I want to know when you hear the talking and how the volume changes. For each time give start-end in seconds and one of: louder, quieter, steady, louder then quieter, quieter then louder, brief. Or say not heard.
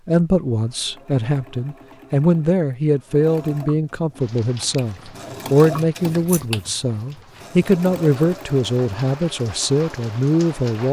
0.1-10.8 steady.